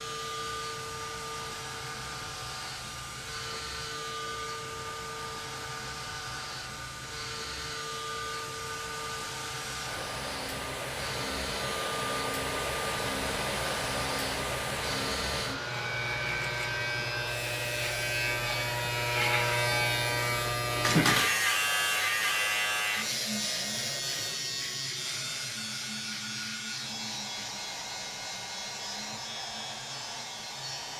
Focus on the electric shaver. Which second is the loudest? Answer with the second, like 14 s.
21 s.